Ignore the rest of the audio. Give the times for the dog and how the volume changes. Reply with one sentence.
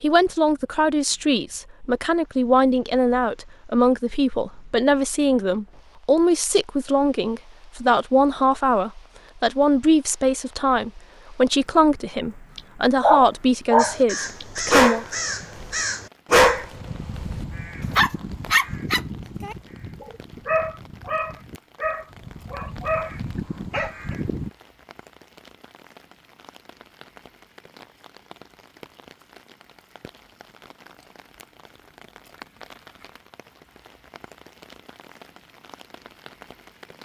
You can hear the dog from 12.6 to 24.1 s, getting quieter.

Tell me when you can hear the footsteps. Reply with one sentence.
The footsteps can't be heard in this clip.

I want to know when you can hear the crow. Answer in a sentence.
You can hear the crow from 13.8 to 24.5 s.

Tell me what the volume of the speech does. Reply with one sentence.
The volume of the speech stays about the same.